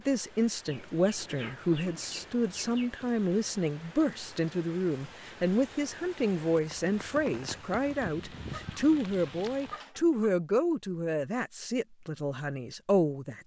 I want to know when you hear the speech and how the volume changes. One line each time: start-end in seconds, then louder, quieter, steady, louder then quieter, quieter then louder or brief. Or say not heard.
0.1-13.4 steady.